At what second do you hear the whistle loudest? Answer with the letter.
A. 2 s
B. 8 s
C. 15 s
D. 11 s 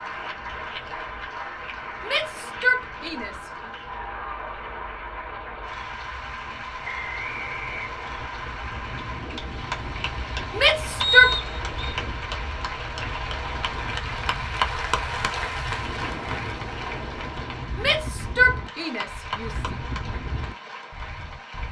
D.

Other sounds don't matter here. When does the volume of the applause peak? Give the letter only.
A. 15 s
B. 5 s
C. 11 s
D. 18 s
A.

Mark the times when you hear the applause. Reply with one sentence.
The applause can be heard from 0.0 to 21.6 s.